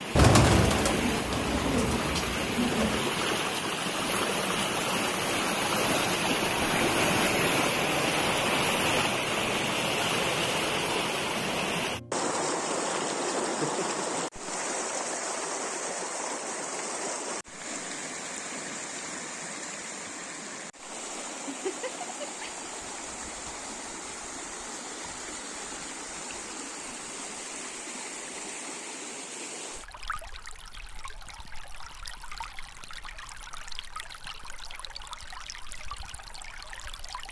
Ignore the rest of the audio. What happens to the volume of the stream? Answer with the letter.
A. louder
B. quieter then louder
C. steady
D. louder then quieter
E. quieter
E.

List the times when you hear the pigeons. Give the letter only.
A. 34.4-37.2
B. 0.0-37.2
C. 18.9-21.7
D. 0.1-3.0
D.